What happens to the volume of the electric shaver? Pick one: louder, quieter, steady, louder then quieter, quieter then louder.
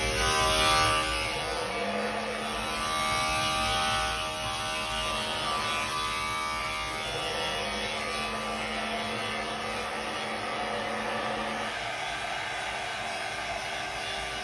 quieter.